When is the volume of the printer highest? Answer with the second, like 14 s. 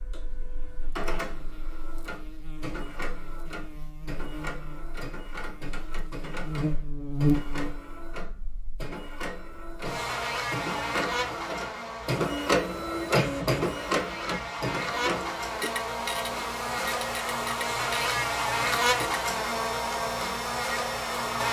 13 s.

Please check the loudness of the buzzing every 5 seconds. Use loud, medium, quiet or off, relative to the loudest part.
quiet, loud, medium, loud, loud.